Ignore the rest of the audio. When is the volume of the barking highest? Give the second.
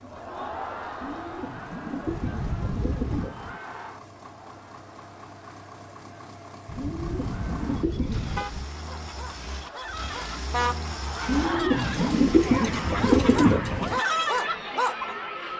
14 s.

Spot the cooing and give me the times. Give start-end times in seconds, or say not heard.
1.0-3.6, 6.8-8.5, 11.2-14.0.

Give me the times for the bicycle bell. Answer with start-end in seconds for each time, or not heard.
not heard.